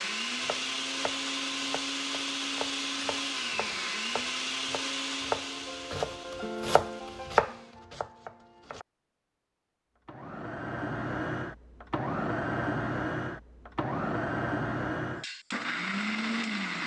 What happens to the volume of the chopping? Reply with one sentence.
The loudness of the chopping goes up.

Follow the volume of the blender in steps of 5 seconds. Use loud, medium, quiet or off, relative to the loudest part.
loud, medium, loud, loud.